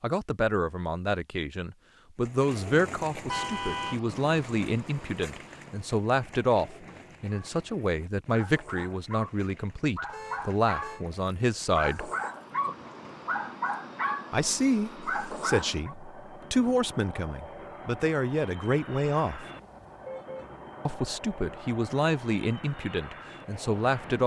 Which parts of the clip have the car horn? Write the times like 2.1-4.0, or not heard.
3.2-4.0, 10.1-11.1, 19.4-20.5.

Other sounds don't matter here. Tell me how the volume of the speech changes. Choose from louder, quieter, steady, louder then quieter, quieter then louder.
steady.